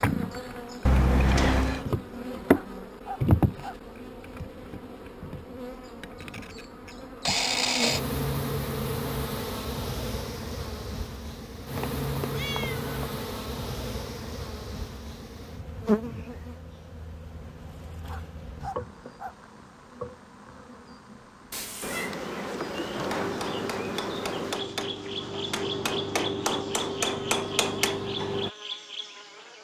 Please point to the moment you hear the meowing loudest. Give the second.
1 s.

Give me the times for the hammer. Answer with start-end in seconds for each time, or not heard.
22.9-28.5.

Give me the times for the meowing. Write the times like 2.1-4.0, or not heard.
0.8-1.9, 11.8-12.9, 21.5-22.1.